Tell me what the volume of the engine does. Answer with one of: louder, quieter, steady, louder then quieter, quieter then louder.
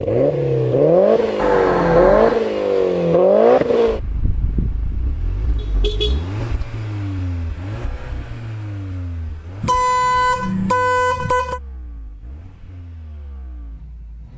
quieter.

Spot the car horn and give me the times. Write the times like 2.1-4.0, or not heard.
1.4-2.4, 5.5-6.3, 9.6-11.6.